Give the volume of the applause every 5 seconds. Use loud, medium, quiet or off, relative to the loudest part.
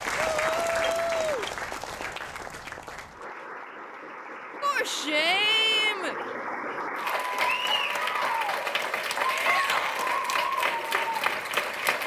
medium, loud, loud.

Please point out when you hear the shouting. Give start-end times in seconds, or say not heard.
0.1-1.5, 4.6-6.2, 9.2-10.1.